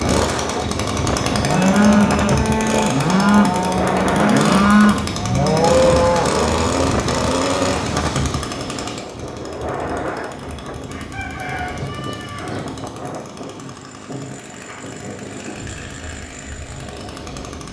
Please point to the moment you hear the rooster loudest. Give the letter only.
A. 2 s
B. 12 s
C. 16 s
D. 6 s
B.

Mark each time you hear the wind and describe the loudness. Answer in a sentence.
You can hear the wind from 0.0 to 17.6 s, getting quieter.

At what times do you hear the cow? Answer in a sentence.
You can hear the cow from 1.3 to 6.5 s.